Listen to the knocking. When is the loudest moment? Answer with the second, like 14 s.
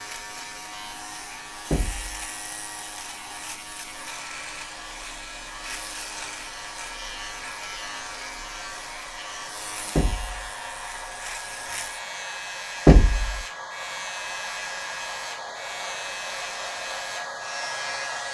13 s.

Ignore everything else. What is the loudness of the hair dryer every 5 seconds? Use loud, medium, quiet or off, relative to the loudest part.
medium, medium, loud, loud.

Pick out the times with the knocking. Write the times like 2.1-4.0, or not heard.
1.7-2.1, 9.9-10.5, 12.8-13.4.